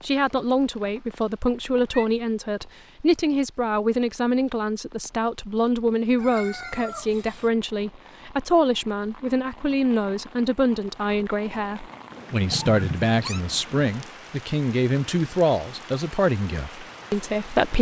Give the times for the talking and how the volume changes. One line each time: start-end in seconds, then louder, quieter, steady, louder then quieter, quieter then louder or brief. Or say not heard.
0.0-17.7 steady.